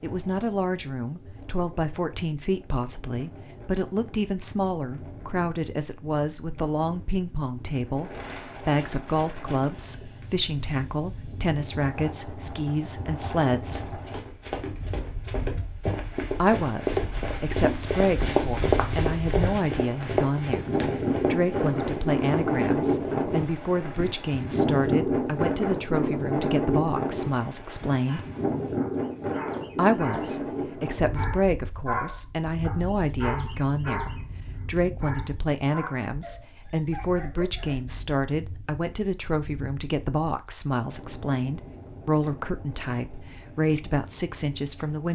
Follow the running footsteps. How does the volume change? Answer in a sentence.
The volume of the running footsteps goes up, then down.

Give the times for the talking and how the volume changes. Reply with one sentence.
The talking can be heard from 0.0 to 14.0 s, at a steady volume; from 16.4 to 28.2 s, at a steady volume; and from 29.8 to 45.0 s, at a steady volume.